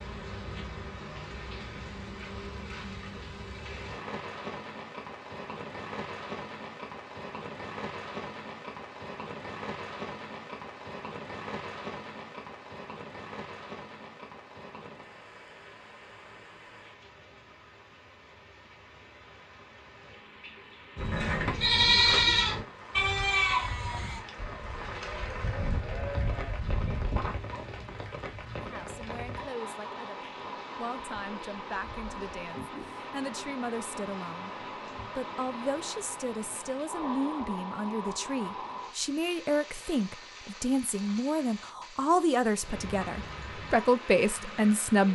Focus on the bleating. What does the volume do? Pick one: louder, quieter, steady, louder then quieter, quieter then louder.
quieter.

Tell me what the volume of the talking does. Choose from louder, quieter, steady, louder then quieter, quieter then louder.
louder.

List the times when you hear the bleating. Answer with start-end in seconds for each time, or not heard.
20.9-27.4.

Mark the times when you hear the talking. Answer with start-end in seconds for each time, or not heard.
28.6-45.1.